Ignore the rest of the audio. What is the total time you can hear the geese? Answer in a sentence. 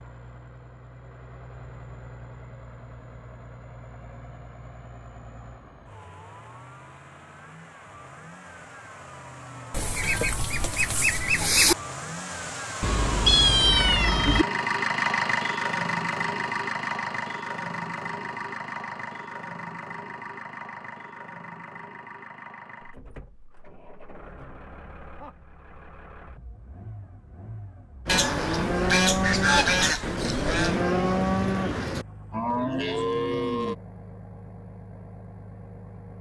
The geese can be heard for 5 seconds in total.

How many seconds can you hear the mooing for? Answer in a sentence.
You can hear the mooing for 6 seconds altogether.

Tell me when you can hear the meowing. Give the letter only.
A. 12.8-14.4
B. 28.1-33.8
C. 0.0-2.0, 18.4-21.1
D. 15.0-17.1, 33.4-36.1
A.